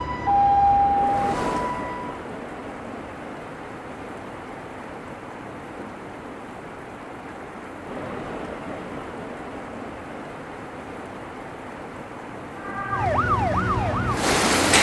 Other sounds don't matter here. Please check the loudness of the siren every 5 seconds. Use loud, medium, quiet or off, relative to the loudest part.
loud, off, loud.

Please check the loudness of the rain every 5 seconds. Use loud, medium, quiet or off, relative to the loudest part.
medium, medium, loud.